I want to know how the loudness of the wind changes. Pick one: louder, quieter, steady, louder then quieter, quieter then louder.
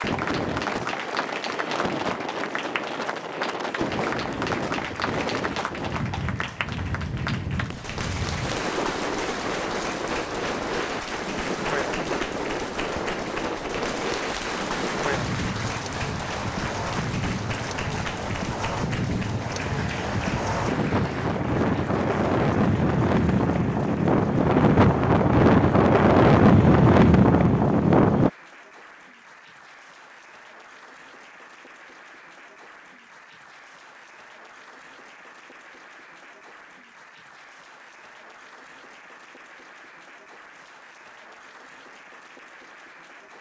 louder.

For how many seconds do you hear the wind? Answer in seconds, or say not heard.
28 s.